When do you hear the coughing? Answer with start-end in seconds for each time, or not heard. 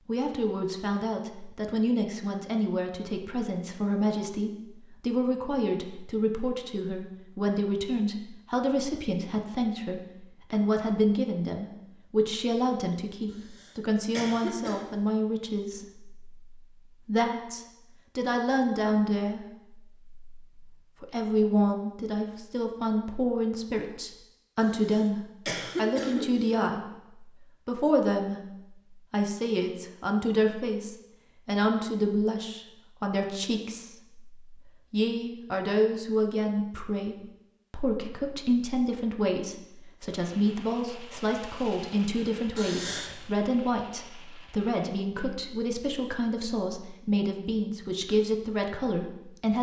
13.3-14.9, 24.6-26.6, 42.5-43.2.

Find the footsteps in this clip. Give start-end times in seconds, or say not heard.
not heard.